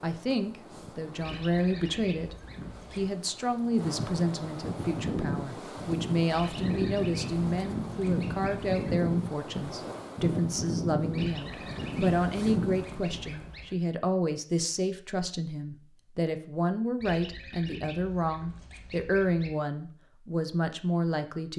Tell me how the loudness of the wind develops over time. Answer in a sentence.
The loudness of the wind goes up.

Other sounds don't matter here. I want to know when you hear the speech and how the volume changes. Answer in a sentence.
The speech can be heard from 0.0 to 21.5 s, at a steady volume.